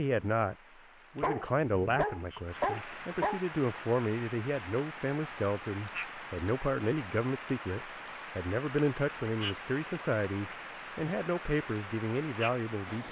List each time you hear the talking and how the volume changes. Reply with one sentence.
The talking can be heard briefly from 0.0 to 0.6 s; and from 1.1 to 13.0 s, at a steady volume.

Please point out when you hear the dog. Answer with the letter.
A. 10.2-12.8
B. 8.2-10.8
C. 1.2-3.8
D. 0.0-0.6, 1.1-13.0
C.